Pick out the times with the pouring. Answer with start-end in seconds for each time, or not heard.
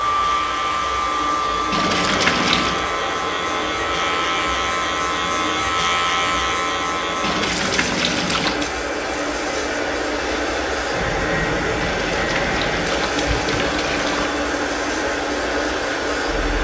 1.7-2.9, 7.2-8.8, 11.8-14.3.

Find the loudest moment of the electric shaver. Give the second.
6 s.